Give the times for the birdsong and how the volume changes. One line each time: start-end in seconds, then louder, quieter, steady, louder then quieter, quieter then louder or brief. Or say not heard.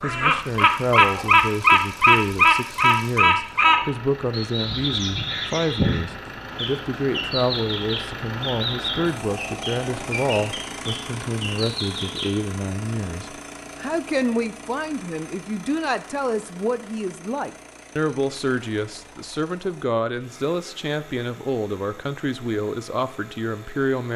0.0-12.4 quieter.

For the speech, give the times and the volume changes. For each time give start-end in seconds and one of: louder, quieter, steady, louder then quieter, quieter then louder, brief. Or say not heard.
0.0-24.1 steady.